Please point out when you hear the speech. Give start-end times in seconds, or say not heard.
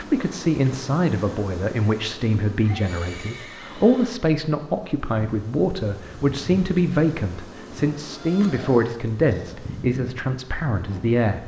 0.0-11.4.